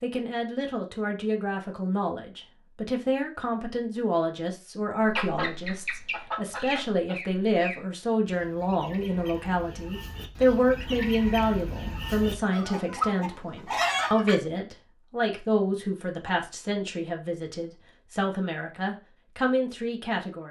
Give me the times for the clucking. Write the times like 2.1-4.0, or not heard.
5.0-14.3.